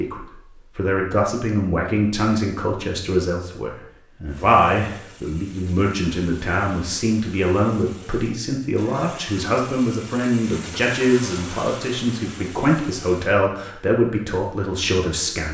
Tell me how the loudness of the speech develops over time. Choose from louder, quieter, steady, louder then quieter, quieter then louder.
steady.